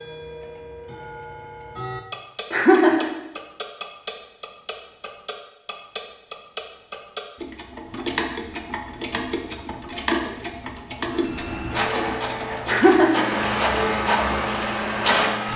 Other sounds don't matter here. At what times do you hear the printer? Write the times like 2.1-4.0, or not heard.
11.1-15.5.